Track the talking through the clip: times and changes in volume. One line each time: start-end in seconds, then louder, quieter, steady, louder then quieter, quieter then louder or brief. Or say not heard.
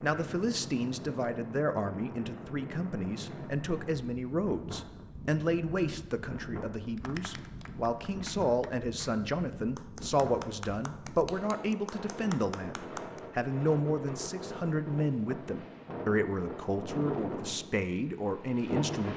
0.0-19.1 steady.